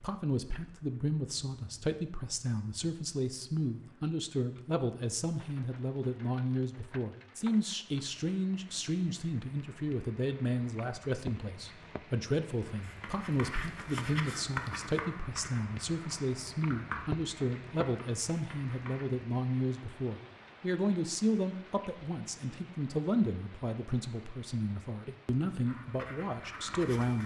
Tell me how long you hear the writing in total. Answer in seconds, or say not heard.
8 s.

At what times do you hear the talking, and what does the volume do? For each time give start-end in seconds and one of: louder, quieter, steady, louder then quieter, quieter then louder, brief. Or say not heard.
0.0-27.2 steady.